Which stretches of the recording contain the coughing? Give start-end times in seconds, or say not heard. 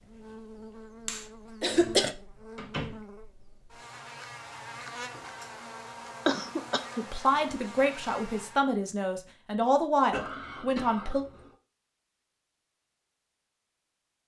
1.1-2.1, 6.2-7.0, 10.1-11.5.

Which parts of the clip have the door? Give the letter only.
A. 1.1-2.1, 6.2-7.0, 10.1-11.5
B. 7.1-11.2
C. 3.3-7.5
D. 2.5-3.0
D.